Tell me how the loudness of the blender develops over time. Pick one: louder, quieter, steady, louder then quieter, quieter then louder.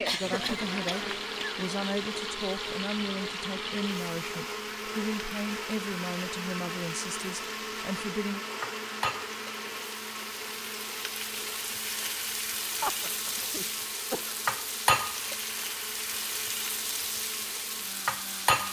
quieter.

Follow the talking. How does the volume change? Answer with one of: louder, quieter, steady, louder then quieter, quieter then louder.
steady.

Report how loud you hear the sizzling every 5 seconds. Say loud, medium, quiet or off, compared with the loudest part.
medium, medium, loud, loud.